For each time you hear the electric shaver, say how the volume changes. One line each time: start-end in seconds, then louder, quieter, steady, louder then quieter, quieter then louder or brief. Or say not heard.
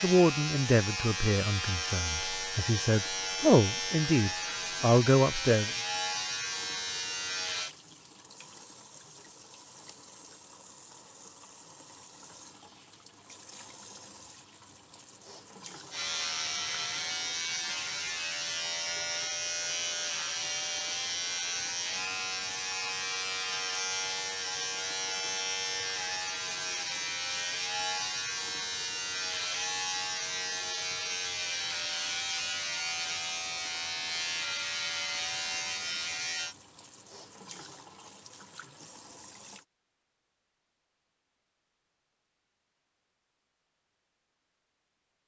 0.0-7.8 steady
15.9-36.5 steady.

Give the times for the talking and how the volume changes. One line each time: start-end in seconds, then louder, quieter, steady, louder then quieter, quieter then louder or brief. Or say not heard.
0.0-5.7 quieter then louder.